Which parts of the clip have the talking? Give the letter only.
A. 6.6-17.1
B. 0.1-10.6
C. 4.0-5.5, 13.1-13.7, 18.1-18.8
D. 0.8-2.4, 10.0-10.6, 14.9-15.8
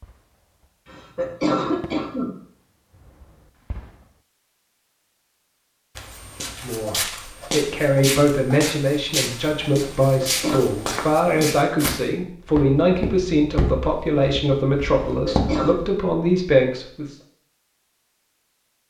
A.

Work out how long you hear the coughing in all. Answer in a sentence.
You can hear the coughing for 3 seconds altogether.